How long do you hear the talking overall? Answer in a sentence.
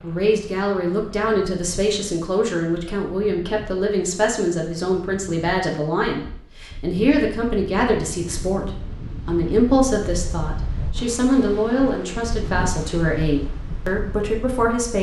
The talking can be heard for 15 seconds in total.